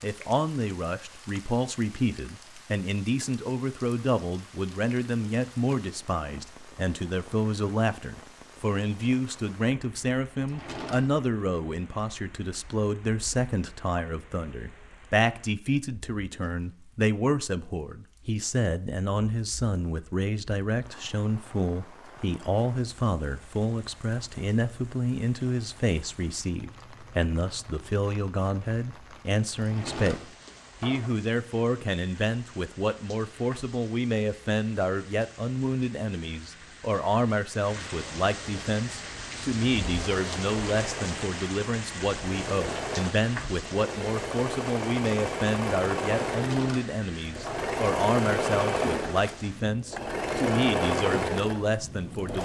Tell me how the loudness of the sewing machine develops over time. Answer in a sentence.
The volume of the sewing machine goes up.